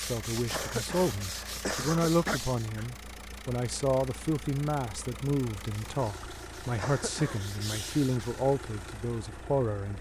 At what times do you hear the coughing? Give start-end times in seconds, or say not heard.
0.5-2.4, 6.8-7.5.